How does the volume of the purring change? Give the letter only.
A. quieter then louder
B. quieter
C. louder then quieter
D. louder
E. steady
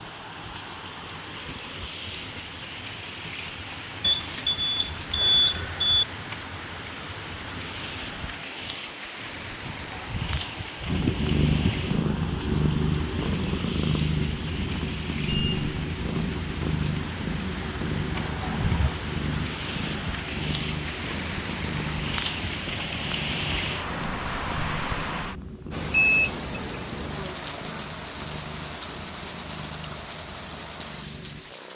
B.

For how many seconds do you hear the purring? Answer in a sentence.
The purring can be heard for 21 seconds in total.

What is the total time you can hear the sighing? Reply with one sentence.
You can hear the sighing for 3 seconds altogether.